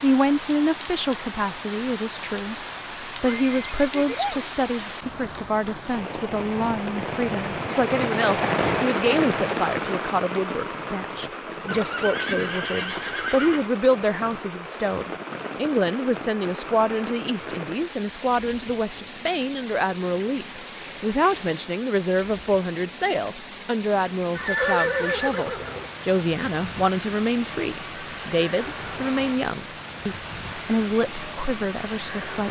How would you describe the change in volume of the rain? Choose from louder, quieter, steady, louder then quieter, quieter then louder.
louder then quieter.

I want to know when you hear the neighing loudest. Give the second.
25 s.